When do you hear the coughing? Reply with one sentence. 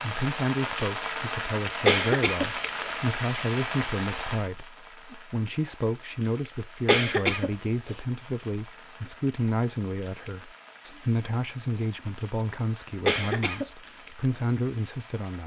You can hear the coughing from 1.9 to 2.9 s, from 6.8 to 7.5 s and from 13.1 to 13.7 s.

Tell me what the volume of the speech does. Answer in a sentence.
The volume of the speech stays about the same.